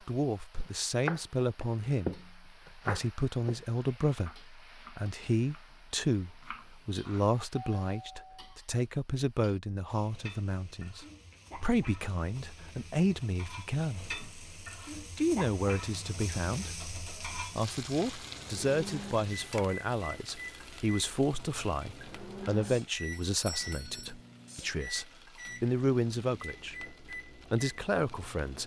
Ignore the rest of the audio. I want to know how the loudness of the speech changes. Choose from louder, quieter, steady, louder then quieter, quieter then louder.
steady.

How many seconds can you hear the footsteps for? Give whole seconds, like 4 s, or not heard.
not heard.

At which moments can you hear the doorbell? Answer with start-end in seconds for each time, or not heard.
7.5-8.6, 23.1-24.1.